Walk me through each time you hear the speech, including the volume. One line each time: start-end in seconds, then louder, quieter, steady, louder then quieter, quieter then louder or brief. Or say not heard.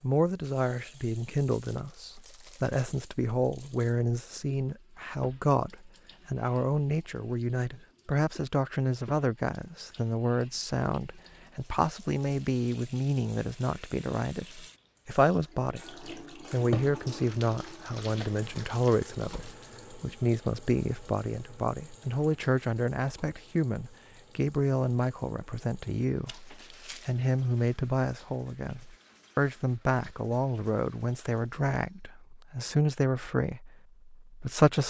0.0-34.8 steady.